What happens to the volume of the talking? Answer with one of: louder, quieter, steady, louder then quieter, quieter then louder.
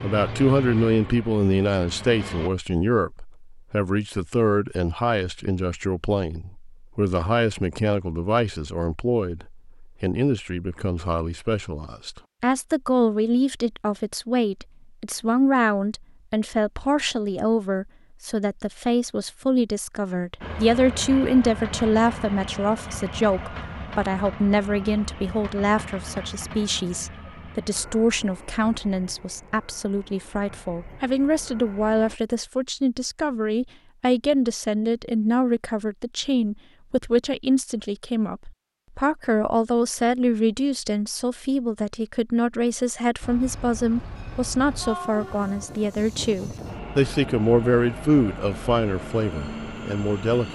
steady.